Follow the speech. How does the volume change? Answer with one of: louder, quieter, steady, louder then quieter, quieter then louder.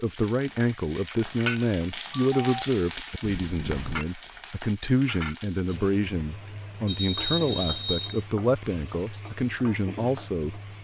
steady.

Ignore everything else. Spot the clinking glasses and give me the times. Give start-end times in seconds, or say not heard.
3.2-4.0.